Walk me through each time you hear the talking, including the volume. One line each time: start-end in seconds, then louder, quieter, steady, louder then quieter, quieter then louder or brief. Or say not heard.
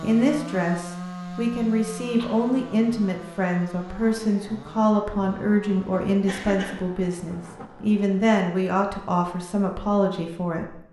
0.0-10.8 steady.